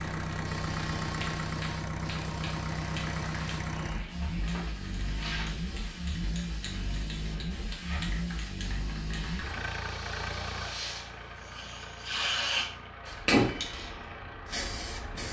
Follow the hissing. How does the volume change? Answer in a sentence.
The volume of the hissing goes up.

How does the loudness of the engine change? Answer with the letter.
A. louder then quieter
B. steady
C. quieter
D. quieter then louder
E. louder
C.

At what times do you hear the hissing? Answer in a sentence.
The hissing can be heard from 0.0 to 15.2 s.